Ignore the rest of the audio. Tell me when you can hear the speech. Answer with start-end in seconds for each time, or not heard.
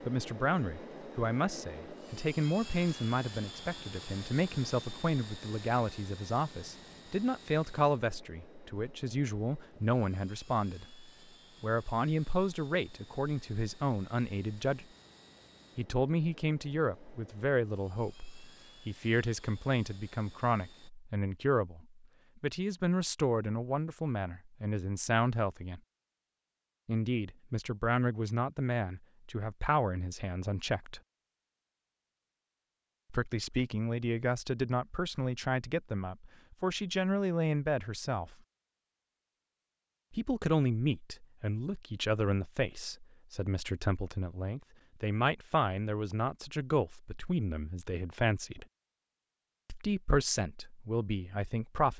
0.1-14.8, 15.8-25.8, 26.9-31.0, 33.1-38.4, 40.1-48.6, 49.6-51.9.